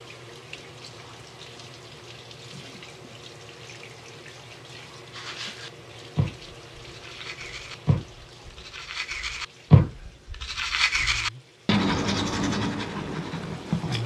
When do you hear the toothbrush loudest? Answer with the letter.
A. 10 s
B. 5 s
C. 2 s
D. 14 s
A.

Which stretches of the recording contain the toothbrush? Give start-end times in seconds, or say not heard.
5.1-14.0.